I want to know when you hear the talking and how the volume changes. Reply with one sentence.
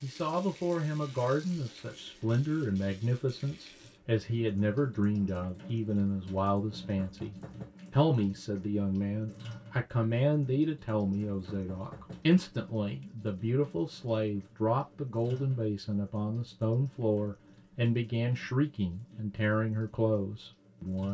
The talking can be heard from 0.0 to 21.0 s, at a steady volume.